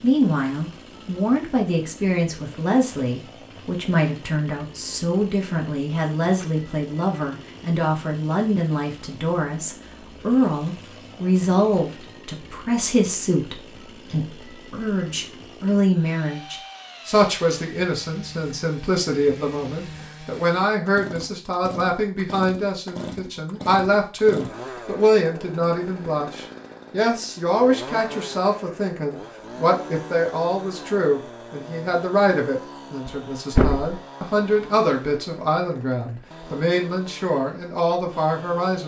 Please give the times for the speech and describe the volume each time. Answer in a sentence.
You can hear the speech from 0.0 to 38.8 s, at a steady volume.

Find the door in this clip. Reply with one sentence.
You can hear the door from 33.0 to 34.0 s.